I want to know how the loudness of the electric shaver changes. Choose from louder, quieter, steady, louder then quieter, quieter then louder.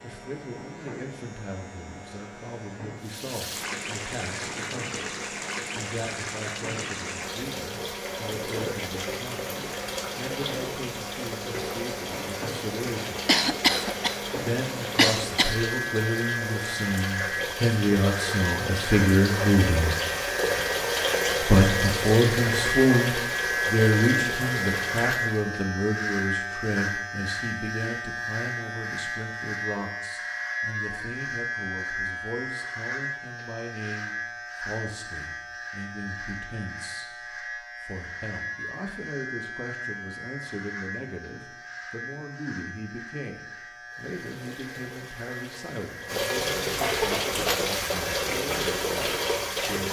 louder then quieter.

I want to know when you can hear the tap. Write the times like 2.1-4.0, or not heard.
3.0-25.4, 43.9-49.8.